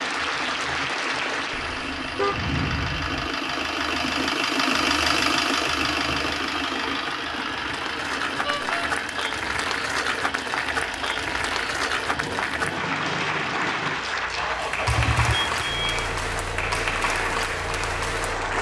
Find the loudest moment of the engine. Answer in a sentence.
The volume of the engine peaks at 5 seconds.